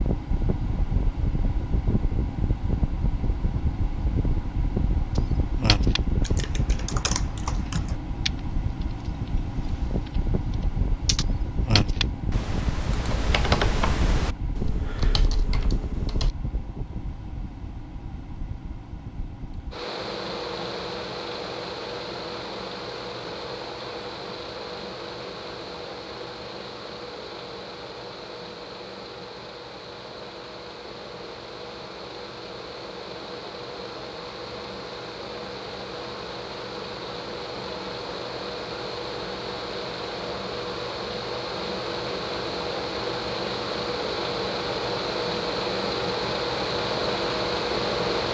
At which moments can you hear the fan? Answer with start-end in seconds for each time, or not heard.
0.0-48.2.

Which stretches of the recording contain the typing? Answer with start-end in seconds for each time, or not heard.
5.2-16.4.